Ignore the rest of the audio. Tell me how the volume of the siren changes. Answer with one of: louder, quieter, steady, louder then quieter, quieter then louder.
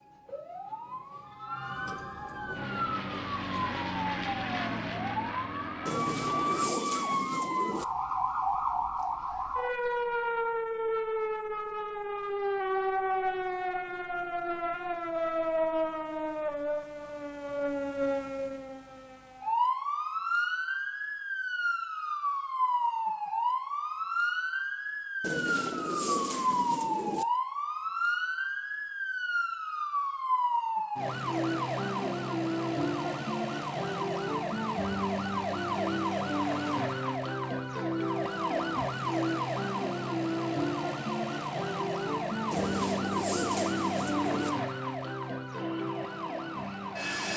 steady.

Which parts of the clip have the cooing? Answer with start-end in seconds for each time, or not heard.
5.8-7.8, 25.2-27.2, 42.5-44.5.